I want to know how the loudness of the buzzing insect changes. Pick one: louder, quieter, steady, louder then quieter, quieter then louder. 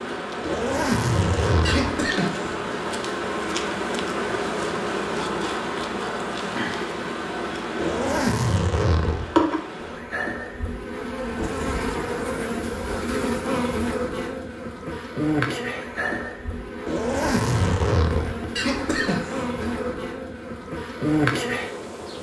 steady.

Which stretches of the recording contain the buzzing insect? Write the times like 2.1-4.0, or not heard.
0.0-22.1.